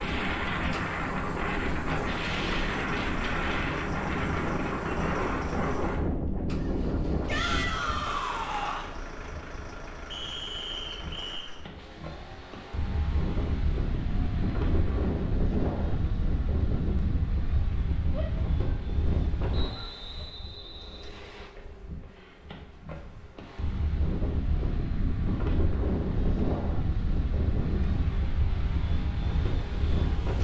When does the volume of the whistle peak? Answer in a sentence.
The volume of the whistle peaks at 11 seconds.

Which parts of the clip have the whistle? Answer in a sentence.
The whistle can be heard from 10.1 to 11.5 s and from 19.5 to 21.5 s.